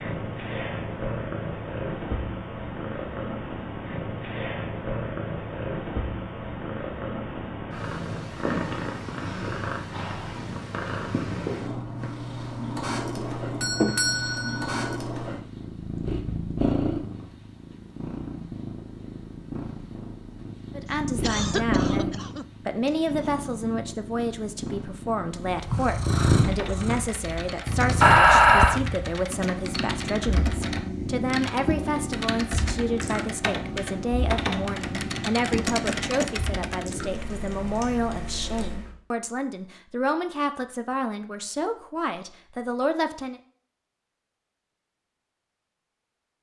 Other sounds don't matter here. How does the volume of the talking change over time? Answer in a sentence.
The volume of the talking stays about the same.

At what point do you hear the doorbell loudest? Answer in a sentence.
The loudest moment of the doorbell is at 28 seconds.